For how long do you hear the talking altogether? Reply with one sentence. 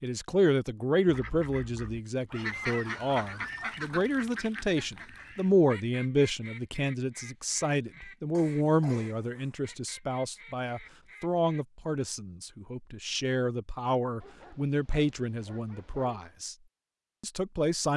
You can hear the talking for 17 seconds altogether.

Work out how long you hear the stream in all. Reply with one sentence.
The stream can't be heard in this clip.